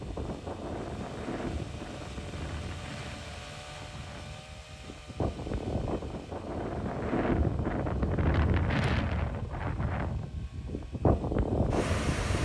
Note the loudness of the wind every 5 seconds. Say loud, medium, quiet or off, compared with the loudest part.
medium, loud, loud.